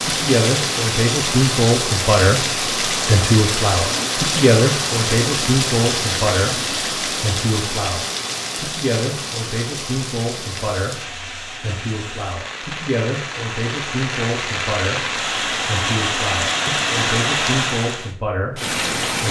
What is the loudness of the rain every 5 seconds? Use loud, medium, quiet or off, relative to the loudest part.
loud, loud, medium, loud.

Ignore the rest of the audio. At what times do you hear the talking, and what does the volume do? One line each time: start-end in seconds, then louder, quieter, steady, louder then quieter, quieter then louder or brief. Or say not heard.
0.0-19.2 quieter.